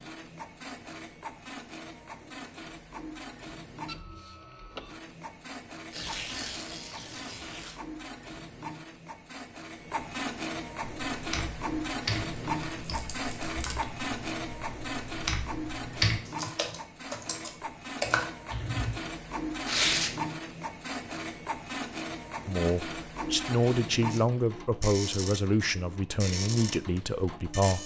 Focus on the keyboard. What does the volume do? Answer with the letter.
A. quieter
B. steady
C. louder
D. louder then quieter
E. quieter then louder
E.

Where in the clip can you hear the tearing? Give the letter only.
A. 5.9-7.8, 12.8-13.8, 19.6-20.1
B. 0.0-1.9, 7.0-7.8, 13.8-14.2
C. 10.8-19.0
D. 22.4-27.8
A.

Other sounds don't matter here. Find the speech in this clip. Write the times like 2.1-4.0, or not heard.
22.4-27.8.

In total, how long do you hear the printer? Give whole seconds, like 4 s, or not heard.
28 s.